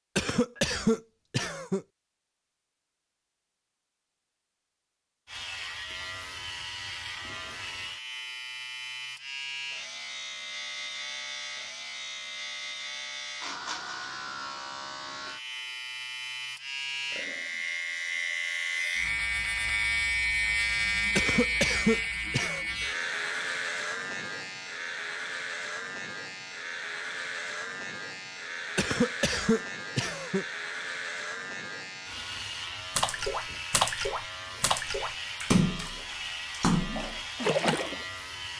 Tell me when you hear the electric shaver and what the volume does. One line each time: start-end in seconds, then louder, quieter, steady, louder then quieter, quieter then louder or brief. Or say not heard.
5.2-38.5 louder then quieter.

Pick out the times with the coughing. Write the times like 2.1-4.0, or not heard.
0.1-1.9, 21.1-22.6, 28.8-30.4.